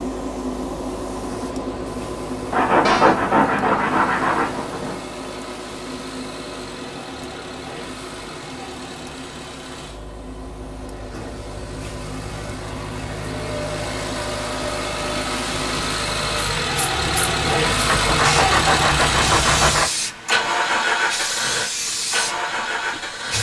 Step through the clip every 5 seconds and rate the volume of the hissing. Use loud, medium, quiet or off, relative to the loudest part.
loud, medium, medium, loud, loud.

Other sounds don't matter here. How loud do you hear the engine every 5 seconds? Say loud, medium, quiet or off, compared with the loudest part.
quiet, quiet, medium, loud, loud.